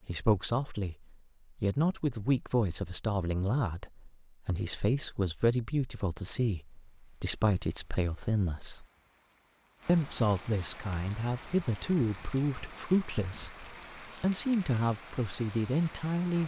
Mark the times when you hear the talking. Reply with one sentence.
You can hear the talking from 0.1 to 8.8 s and from 9.8 to 16.4 s.